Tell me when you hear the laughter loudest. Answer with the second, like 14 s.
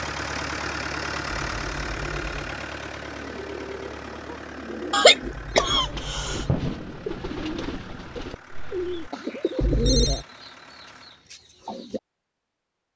5 s.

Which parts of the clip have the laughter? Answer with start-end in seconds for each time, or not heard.
4.9-6.5.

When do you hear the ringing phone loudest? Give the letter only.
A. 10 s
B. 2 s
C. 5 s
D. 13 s
A.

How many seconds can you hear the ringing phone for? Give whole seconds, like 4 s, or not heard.
3 s.